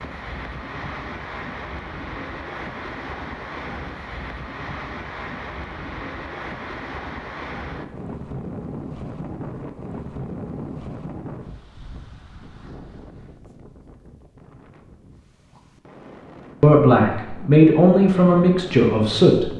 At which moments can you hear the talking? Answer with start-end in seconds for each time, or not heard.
16.6-19.5.